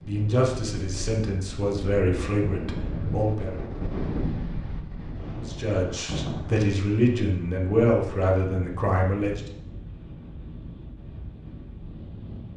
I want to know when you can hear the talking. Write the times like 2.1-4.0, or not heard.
0.1-3.5, 5.4-9.6.